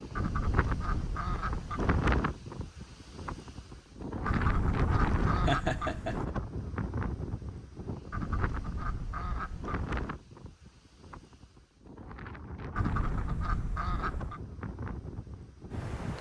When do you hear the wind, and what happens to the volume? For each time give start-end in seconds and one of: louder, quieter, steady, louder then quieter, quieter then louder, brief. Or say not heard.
0.0-16.1 quieter.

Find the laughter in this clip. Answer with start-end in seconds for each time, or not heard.
5.5-6.3.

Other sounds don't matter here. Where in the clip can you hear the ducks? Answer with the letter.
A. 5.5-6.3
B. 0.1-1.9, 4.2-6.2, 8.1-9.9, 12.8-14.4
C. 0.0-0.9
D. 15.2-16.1
B.